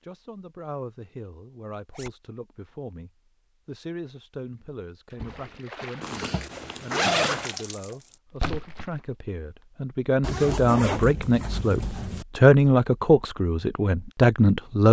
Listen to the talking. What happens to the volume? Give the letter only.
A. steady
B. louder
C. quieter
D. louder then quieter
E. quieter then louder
B.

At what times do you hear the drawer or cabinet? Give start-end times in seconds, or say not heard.
not heard.